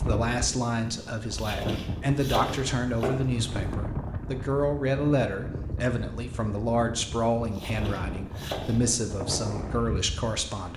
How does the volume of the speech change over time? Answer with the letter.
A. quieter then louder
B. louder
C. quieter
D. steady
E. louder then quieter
D.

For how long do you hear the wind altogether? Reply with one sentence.
The wind can be heard for 11 seconds in total.